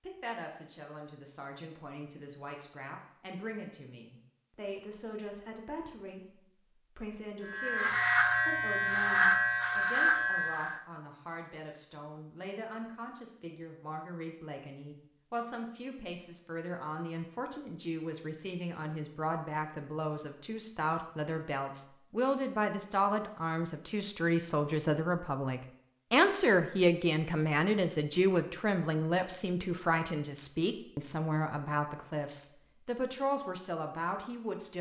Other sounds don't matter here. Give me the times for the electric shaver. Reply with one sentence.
You can hear the electric shaver from 7.5 to 10.8 s.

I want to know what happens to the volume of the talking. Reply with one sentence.
The volume of the talking goes up.